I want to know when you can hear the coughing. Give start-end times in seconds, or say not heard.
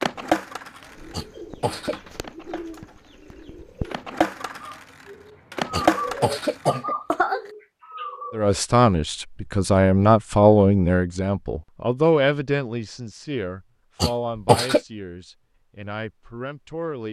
1.1-1.9, 5.7-7.5, 14.0-14.8.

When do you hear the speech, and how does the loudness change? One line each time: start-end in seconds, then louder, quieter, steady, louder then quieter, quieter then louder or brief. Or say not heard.
8.3-17.0 quieter.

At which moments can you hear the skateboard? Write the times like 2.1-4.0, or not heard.
0.0-6.5.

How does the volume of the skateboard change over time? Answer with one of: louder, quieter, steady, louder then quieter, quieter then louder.
quieter then louder.